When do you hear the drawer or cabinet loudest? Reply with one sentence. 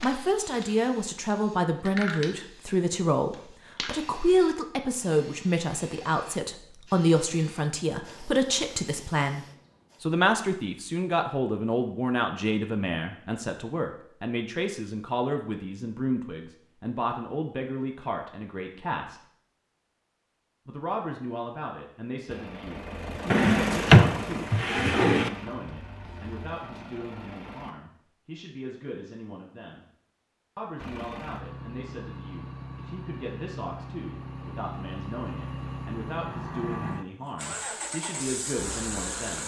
The loudest moment of the drawer or cabinet is at 24 seconds.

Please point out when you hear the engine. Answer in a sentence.
You can hear the engine from 22.2 to 27.8 s and from 30.8 to 39.4 s.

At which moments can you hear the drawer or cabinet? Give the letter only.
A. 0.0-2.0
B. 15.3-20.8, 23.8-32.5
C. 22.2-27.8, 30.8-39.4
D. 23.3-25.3
D.